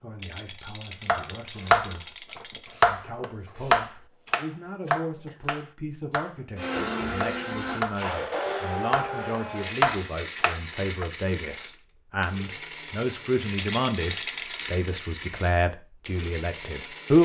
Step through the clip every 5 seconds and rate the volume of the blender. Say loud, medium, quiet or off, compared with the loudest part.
off, loud, medium, medium.